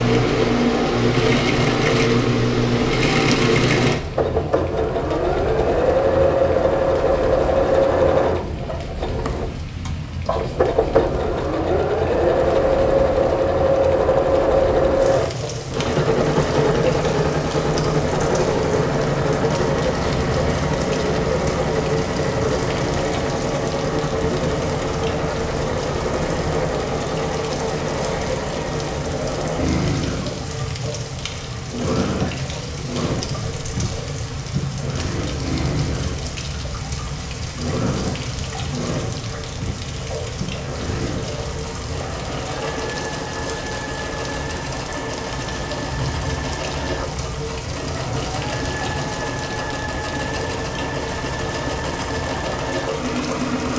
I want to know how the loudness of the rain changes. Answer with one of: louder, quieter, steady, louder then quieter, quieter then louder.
steady.